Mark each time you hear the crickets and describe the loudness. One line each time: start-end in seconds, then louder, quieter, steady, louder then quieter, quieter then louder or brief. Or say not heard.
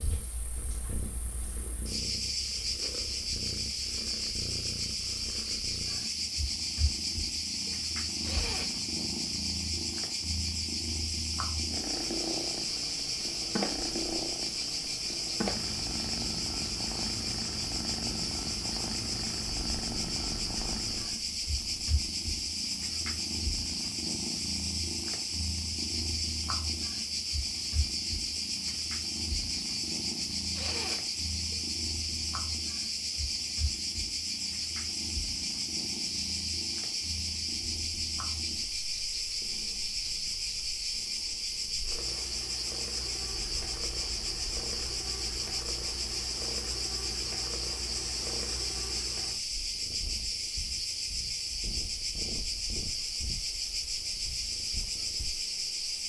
0.0-56.0 steady.